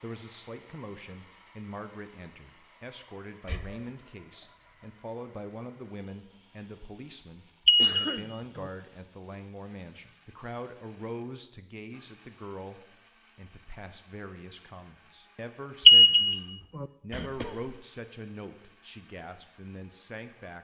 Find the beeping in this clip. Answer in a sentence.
The beeping can be heard from 7.7 to 8.2 s and from 15.8 to 16.4 s.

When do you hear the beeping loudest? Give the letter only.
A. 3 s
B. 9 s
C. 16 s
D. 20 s
C.